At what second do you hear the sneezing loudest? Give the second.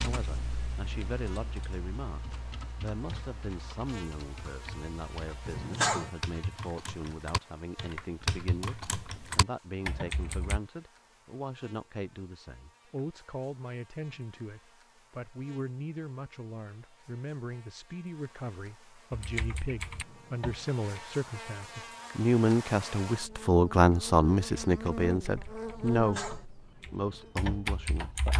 6 s.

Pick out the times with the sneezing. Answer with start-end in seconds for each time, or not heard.
5.5-6.1, 25.9-26.4.